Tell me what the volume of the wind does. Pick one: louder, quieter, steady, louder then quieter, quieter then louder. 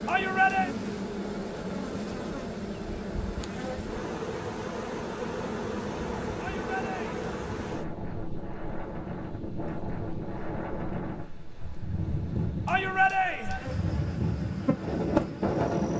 louder.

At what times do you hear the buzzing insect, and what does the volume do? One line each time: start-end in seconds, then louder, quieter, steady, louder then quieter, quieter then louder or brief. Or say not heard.
0.0-15.9 quieter then louder.